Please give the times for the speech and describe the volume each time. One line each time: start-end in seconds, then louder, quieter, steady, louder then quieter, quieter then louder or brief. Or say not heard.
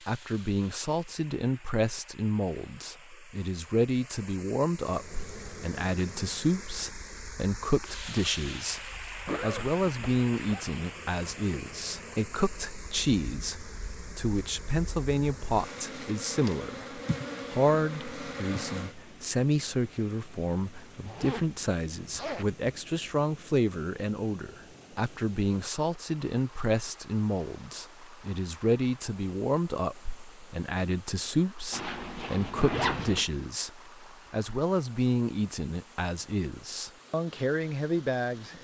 0.1-38.6 steady.